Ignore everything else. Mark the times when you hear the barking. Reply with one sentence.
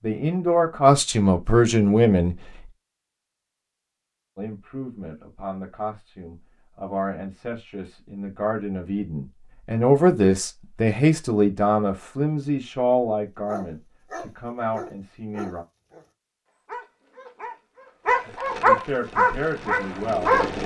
You can hear the barking from 13.4 to 16.1 s and from 16.6 to 20.6 s.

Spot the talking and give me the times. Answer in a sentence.
The talking can be heard from 0.0 to 2.4 s, from 4.3 to 15.7 s and from 18.2 to 20.4 s.